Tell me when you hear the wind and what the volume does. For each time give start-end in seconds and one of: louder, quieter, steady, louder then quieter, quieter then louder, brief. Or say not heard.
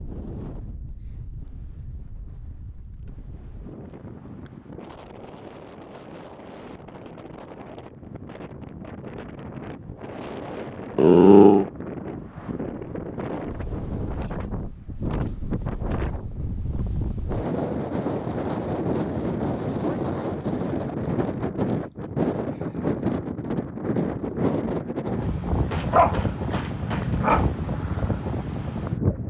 0.0-29.2 louder.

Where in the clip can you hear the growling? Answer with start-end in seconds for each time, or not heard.
10.9-11.7, 25.1-27.5.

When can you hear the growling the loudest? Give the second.
11 s.